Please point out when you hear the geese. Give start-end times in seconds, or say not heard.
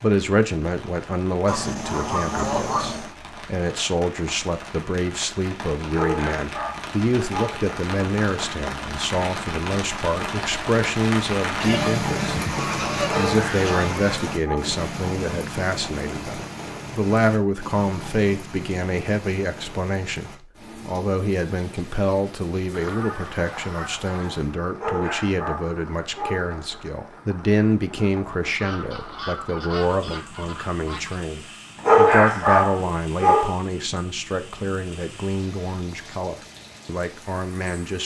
1.4-3.1, 11.6-14.3, 22.7-24.5, 28.6-31.2.